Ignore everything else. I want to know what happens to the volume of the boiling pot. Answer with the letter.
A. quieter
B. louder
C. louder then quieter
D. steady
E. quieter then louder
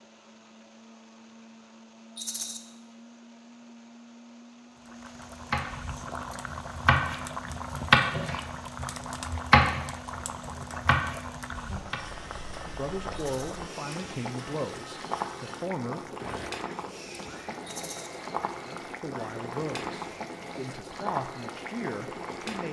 D.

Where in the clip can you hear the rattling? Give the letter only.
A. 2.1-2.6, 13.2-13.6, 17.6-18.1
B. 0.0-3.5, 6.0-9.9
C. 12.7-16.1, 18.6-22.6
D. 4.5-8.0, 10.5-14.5
A.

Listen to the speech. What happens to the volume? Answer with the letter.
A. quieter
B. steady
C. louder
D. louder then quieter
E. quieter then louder
B.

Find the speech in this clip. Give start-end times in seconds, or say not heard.
12.7-16.1, 18.6-22.6.